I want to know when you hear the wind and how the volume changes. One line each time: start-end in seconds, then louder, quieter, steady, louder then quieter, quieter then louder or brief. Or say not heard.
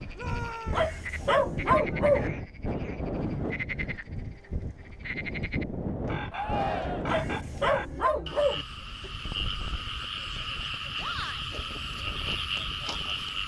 0.0-13.4 quieter.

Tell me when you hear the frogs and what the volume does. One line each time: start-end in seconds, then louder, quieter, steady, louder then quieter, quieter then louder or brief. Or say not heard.
0.0-13.4 louder.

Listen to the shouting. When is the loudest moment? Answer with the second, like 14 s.
7 s.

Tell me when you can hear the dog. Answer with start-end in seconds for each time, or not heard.
0.7-2.3, 7.0-8.7.